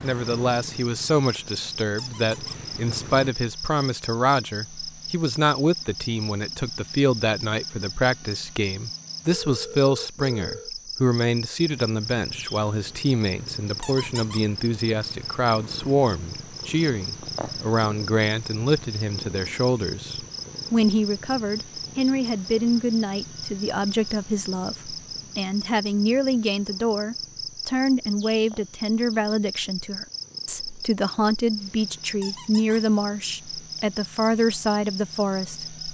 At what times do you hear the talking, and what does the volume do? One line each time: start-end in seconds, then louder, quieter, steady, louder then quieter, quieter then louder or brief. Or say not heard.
0.0-35.8 steady.